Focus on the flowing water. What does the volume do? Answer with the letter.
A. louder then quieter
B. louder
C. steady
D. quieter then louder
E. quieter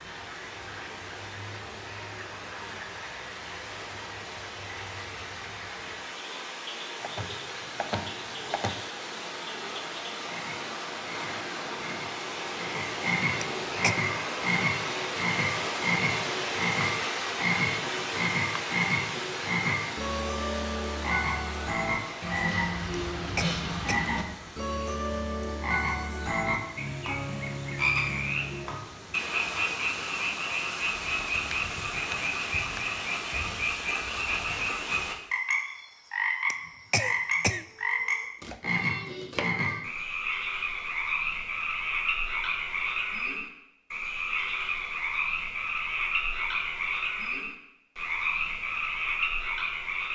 A.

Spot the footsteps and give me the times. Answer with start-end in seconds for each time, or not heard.
not heard.